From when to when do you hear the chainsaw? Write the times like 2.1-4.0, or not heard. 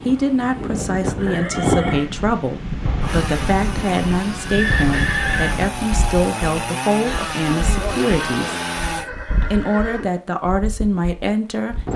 3.0-9.1.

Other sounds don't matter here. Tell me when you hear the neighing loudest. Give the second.
5 s.